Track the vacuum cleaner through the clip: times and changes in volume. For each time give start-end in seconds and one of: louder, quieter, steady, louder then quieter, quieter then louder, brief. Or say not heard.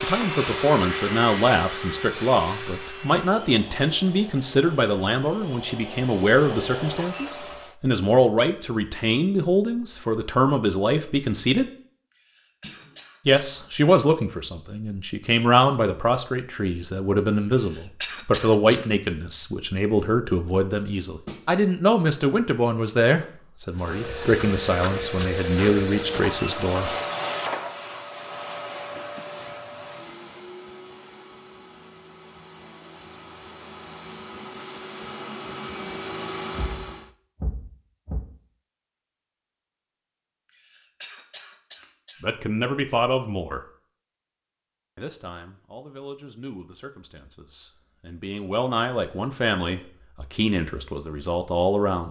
0.0-7.8 quieter then louder
23.7-37.1 quieter then louder.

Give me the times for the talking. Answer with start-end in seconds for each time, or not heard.
0.0-11.7, 13.2-26.9, 42.2-43.6, 45.0-52.0.